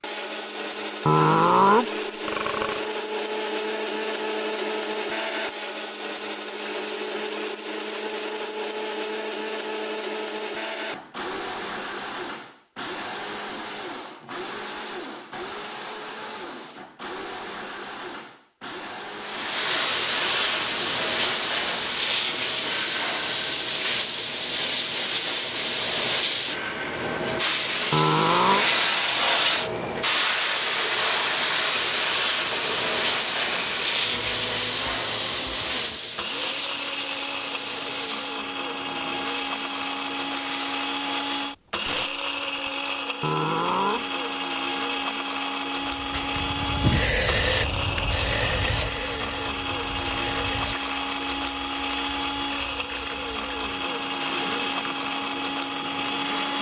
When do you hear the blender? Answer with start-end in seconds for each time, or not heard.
0.0-56.5.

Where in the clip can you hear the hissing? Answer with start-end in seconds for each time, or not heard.
19.2-42.7, 45.9-56.5.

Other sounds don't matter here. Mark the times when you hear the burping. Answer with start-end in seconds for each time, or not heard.
1.1-2.9, 27.9-28.6, 43.2-44.0.